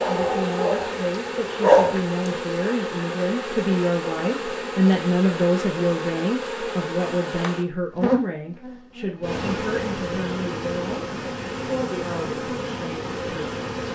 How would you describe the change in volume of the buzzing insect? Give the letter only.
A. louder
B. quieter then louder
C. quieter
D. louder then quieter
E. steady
E.